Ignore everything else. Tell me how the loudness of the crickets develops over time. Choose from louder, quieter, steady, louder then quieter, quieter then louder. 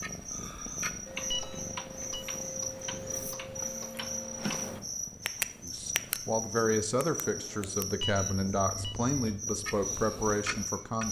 steady.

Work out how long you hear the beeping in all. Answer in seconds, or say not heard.
2 s.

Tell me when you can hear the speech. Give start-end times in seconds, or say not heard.
5.6-11.0.